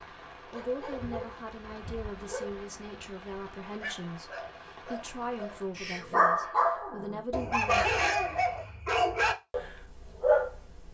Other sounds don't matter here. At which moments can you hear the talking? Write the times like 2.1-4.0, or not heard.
0.5-7.9.